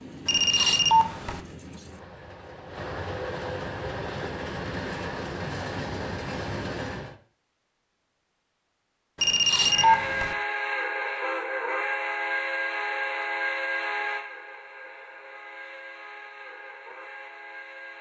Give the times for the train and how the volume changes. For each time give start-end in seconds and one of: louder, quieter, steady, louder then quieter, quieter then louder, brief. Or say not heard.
0.0-7.2 louder
9.6-17.9 quieter.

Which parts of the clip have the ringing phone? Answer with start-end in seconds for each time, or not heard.
0.2-1.4, 9.2-10.3.